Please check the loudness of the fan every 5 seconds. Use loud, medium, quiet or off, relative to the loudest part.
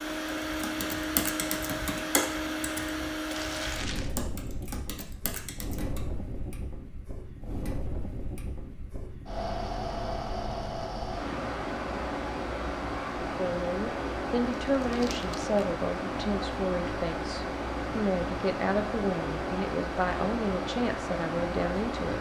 loud, medium, loud, loud, loud.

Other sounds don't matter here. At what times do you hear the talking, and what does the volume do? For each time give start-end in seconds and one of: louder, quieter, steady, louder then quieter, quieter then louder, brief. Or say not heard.
13.2-22.1 steady.